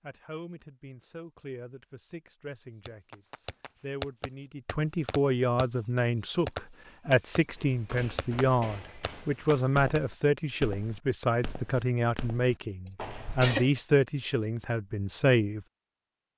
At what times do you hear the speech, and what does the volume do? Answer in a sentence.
The speech can be heard from 0.0 to 15.7 s, getting louder.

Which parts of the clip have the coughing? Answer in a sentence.
The coughing can be heard from 12.8 to 13.7 s.